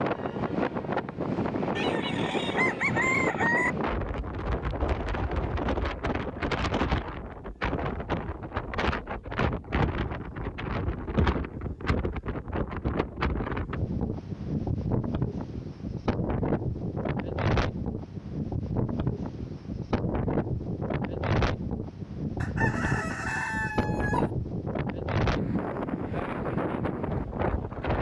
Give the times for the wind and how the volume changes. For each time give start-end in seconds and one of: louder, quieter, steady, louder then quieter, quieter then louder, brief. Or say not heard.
0.0-27.9 steady.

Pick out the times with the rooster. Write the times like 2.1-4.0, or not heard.
1.8-3.7, 22.4-24.3.